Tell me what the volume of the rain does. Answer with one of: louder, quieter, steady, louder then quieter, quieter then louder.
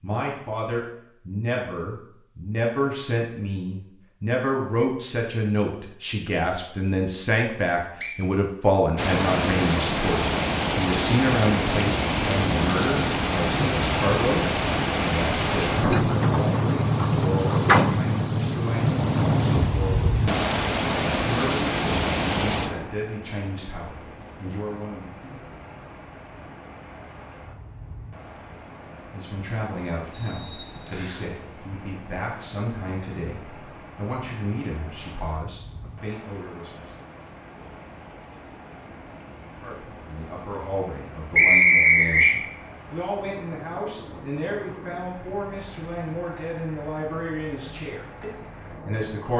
quieter.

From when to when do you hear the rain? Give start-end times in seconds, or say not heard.
8.9-49.3.